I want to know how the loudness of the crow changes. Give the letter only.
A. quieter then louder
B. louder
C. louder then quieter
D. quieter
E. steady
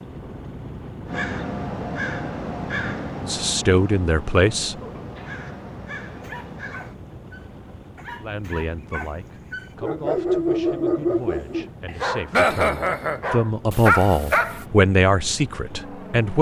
D.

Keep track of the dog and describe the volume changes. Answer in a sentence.
The volume of the dog goes up.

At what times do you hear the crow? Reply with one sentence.
The crow can be heard from 1.1 to 7.0 s.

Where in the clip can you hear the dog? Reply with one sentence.
You can hear the dog from 6.2 to 14.7 s.